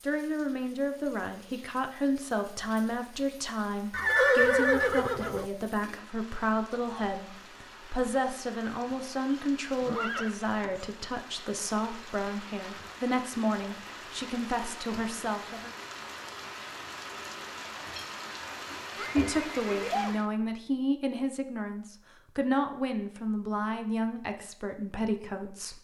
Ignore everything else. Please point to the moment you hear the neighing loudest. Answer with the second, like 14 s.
4 s.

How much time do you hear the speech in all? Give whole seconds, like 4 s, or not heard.
22 s.